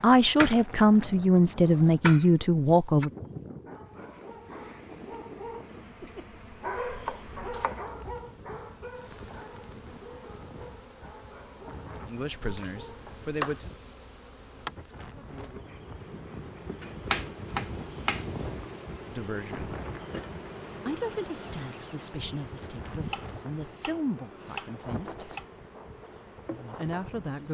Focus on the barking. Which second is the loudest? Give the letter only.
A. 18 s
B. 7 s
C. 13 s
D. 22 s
B.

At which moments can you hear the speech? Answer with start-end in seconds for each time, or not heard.
0.0-3.1, 12.1-13.7, 19.1-19.8, 20.9-25.4, 26.5-27.4.